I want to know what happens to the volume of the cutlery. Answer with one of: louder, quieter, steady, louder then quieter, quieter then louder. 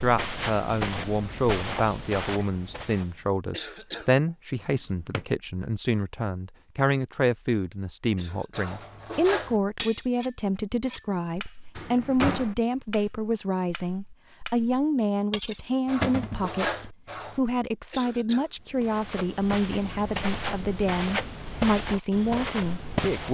steady.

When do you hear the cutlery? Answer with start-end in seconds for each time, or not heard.
8.6-17.4.